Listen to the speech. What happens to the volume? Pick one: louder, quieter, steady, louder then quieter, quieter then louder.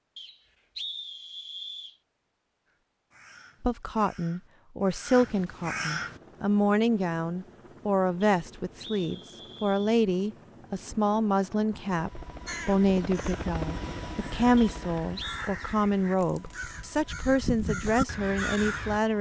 steady.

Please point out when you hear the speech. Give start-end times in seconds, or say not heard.
3.6-19.1.